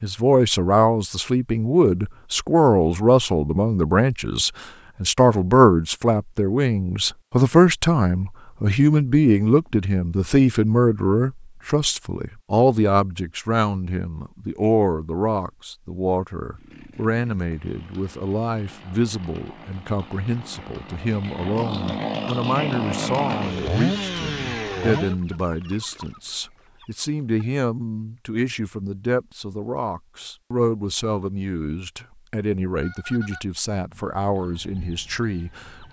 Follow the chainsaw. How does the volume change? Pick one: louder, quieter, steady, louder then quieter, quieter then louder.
louder.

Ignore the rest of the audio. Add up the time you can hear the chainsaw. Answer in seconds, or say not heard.
9 s.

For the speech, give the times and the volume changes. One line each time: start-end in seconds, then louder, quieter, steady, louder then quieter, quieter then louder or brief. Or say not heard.
0.0-35.8 quieter.